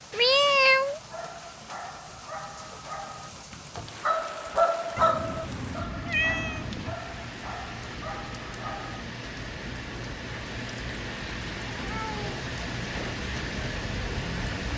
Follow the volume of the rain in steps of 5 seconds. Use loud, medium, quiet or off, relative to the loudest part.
medium, medium, loud.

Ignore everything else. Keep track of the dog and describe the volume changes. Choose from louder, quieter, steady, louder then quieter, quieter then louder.
louder then quieter.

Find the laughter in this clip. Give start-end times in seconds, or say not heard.
not heard.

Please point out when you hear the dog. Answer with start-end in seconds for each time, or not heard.
0.9-9.0.